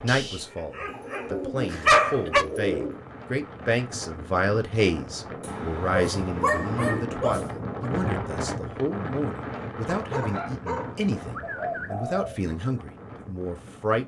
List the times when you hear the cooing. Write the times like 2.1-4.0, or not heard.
0.8-3.0, 5.5-7.2, 11.4-12.4.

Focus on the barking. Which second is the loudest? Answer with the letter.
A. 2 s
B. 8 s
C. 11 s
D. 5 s
A.